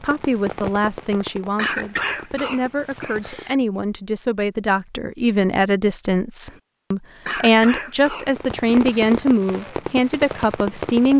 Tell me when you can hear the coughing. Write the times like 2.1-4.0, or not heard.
1.6-3.5, 7.2-9.2.